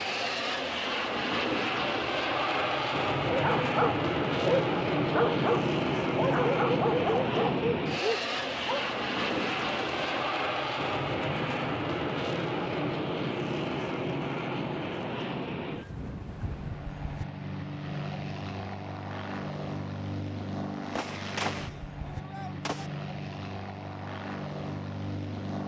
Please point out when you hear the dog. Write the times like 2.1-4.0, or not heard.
3.2-8.8.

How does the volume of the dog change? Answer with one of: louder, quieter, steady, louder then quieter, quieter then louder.
quieter.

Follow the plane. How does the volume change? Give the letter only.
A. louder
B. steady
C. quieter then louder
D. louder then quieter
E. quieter
E.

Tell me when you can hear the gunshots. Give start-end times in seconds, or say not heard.
8.3-10.2, 20.9-22.9.